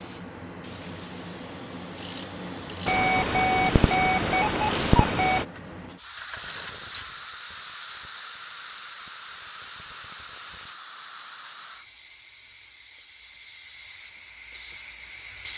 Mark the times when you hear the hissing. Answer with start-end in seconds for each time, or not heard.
0.0-15.5.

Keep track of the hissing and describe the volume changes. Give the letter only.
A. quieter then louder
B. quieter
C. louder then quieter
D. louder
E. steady
E.